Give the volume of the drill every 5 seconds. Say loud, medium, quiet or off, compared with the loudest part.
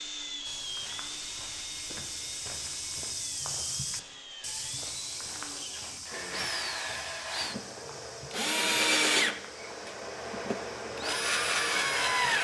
quiet, loud, loud.